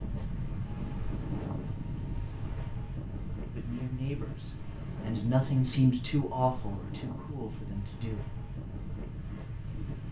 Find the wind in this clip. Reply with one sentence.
The wind can be heard from 0.0 to 10.0 s.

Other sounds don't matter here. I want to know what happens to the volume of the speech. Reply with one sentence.
The volume of the speech goes up, then down.